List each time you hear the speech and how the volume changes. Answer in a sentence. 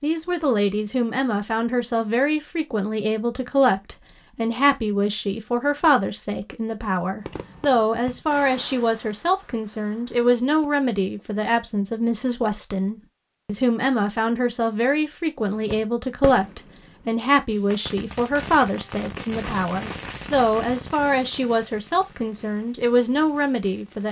The speech can be heard from 0.0 to 24.0 s, at a steady volume.